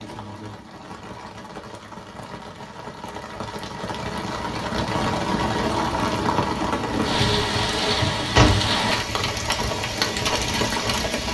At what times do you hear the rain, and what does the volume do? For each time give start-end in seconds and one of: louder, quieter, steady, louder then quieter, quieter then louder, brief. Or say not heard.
0.0-11.2 louder.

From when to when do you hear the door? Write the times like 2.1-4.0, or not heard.
7.2-8.8.